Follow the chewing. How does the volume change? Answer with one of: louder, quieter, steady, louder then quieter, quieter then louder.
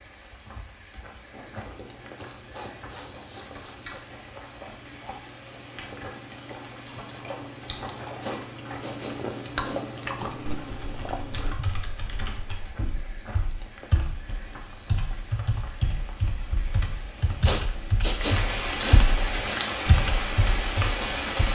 louder.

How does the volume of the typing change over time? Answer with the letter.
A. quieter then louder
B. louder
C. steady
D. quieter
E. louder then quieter
B.